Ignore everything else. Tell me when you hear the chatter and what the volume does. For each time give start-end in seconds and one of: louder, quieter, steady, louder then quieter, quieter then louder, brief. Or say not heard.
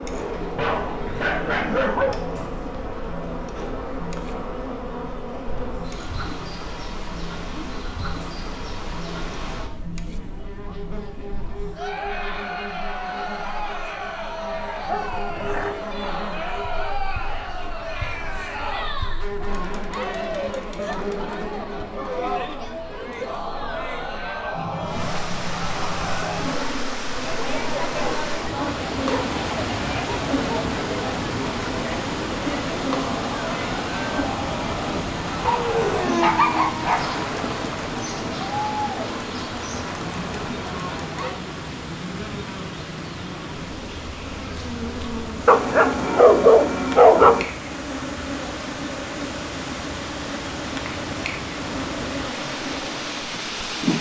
0.0-41.4 louder.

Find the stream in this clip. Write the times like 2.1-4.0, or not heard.
24.8-53.9.